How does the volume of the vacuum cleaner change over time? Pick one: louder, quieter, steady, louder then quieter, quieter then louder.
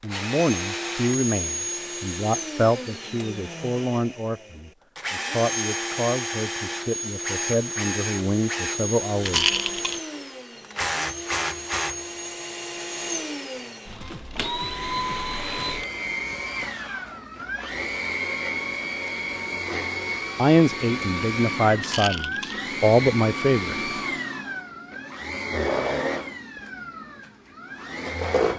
steady.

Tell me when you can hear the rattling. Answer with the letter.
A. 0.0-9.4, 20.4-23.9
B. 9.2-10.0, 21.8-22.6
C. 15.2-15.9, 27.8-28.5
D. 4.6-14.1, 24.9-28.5
B.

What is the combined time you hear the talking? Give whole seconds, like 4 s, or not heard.
13 s.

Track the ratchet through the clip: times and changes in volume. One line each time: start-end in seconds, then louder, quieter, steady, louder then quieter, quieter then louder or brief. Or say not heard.
not heard.